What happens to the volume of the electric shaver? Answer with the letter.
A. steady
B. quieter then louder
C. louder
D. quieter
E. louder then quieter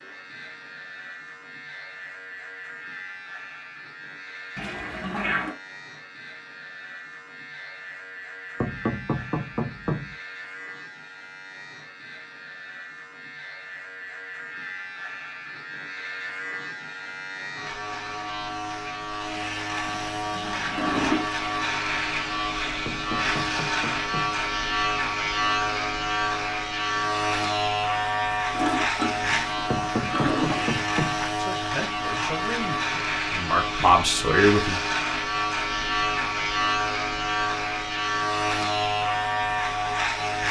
C.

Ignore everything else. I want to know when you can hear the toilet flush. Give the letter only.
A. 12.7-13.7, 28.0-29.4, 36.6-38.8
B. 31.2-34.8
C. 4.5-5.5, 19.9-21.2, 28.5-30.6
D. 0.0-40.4
C.